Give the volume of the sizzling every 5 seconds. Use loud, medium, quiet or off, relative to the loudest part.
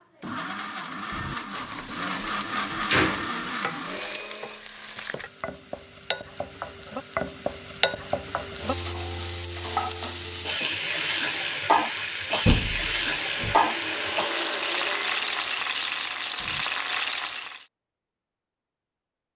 quiet, medium, loud, loud.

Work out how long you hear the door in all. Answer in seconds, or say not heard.
3 s.